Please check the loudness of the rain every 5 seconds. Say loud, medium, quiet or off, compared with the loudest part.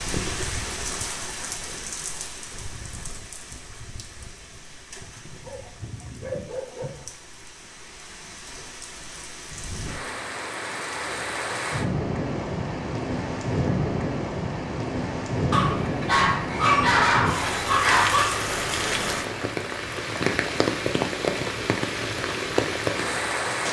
medium, quiet, loud, loud, loud.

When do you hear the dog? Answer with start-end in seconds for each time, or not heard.
5.2-7.0, 15.5-18.4.